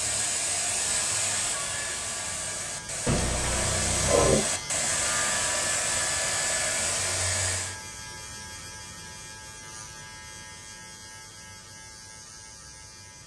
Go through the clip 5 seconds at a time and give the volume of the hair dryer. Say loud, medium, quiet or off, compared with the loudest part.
loud, loud, off.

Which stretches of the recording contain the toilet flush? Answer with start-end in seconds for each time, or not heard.
3.0-4.5.